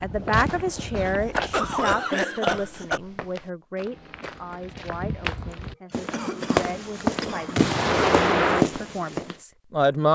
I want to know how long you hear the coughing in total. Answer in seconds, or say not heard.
4 s.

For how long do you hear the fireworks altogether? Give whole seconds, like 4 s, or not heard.
2 s.